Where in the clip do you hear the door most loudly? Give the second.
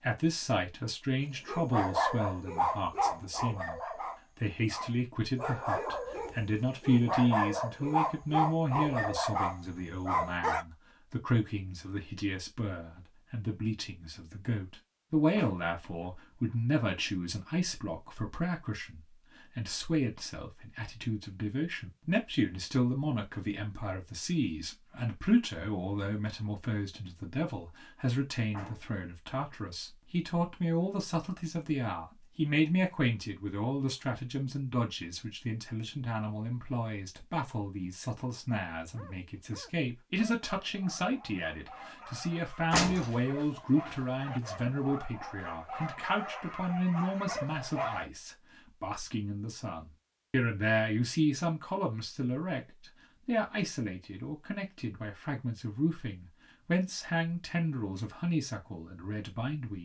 43 s.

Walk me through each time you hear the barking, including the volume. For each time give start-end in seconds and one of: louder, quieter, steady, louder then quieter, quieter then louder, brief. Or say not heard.
1.4-10.7 quieter then louder
38.9-48.1 louder.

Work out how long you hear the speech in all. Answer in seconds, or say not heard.
59 s.